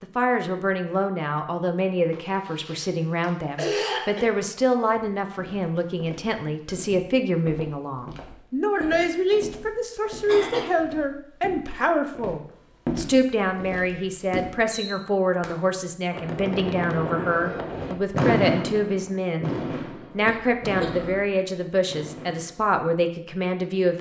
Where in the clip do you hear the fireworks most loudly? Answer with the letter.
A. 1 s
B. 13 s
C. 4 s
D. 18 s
D.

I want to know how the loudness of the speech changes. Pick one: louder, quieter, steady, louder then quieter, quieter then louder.
steady.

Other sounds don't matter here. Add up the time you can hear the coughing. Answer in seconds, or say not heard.
5 s.